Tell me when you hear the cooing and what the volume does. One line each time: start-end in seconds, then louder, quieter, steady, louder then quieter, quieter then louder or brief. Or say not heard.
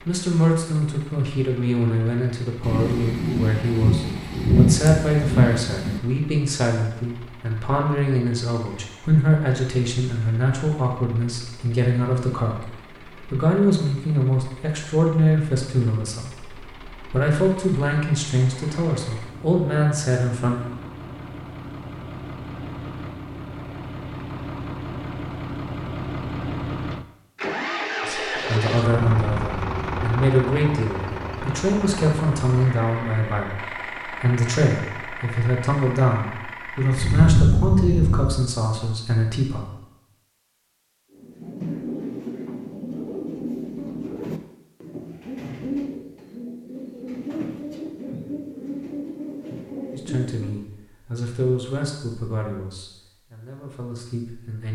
41.1-50.6 steady.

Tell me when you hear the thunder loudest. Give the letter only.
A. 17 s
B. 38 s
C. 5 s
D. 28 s
C.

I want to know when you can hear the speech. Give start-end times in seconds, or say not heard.
0.1-20.6, 28.1-39.6, 49.9-54.6.